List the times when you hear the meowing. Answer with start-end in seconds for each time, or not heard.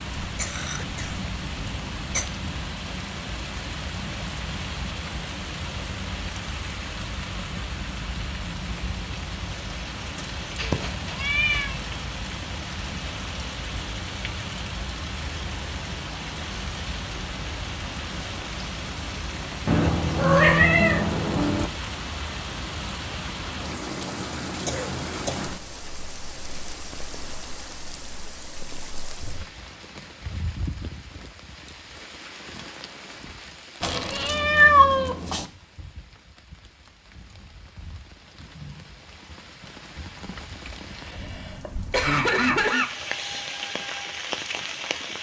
10.2-11.8, 19.6-21.7, 33.8-35.5.